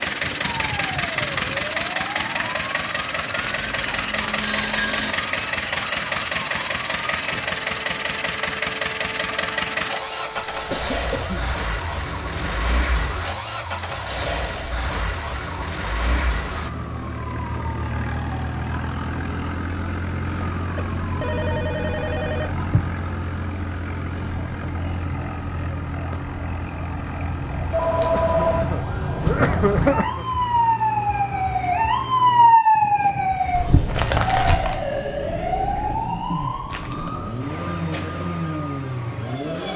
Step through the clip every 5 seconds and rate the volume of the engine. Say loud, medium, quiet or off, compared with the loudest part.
loud, loud, loud, medium, medium, medium, medium, medium.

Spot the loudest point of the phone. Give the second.
28 s.